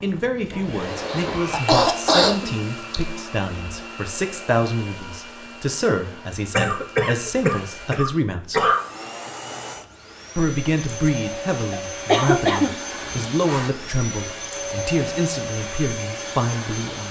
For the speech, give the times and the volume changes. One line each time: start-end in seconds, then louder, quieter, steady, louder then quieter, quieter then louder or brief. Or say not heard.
0.0-8.7 steady
10.3-17.0 steady.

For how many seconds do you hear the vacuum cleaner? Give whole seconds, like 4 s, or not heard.
17 s.